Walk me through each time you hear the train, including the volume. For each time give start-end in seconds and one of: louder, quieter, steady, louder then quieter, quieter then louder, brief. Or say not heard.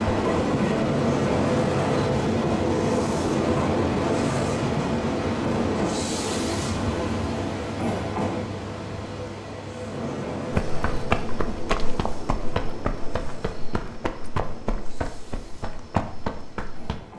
0.0-17.1 quieter.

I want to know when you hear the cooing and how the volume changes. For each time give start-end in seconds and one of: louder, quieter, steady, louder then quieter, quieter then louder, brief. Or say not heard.
not heard.